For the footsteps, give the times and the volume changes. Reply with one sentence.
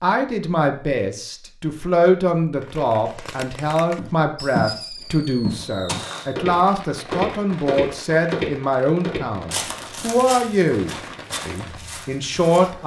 The footsteps can be heard from 4.0 to 12.8 s, getting quieter.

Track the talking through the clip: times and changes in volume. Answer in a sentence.
The talking can be heard from 0.0 to 12.8 s, at a steady volume.